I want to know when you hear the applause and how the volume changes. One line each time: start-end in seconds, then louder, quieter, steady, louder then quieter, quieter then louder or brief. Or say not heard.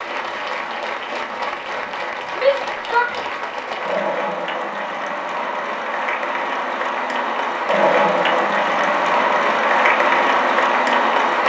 0.0-11.4 louder.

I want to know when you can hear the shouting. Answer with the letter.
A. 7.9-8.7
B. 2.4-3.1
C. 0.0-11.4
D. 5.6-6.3
B.